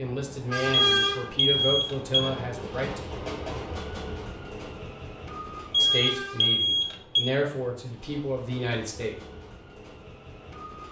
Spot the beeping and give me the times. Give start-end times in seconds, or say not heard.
0.7-2.3, 5.7-7.3.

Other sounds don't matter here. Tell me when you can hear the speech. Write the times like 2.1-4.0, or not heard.
0.0-3.0, 5.8-9.2.